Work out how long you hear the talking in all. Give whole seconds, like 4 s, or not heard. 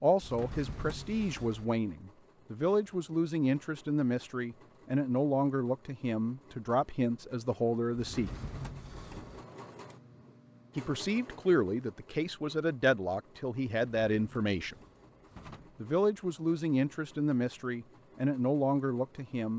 16 s.